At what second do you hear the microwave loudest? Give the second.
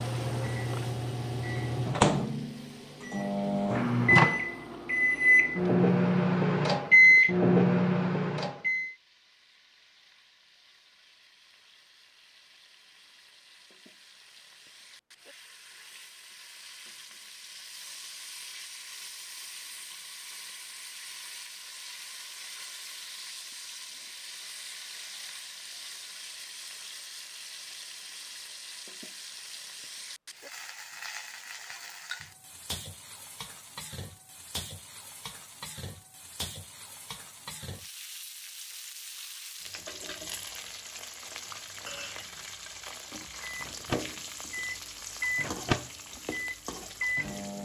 7 s.